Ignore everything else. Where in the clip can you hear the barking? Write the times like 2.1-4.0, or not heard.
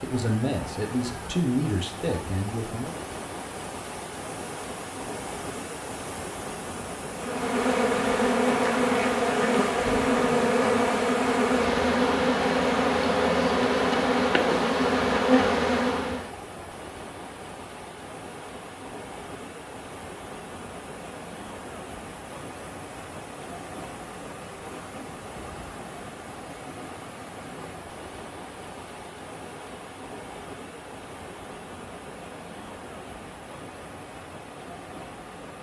not heard.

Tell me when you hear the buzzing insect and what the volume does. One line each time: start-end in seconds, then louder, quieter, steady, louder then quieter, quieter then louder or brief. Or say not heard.
7.2-16.4 steady.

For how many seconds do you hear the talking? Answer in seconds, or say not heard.
3 s.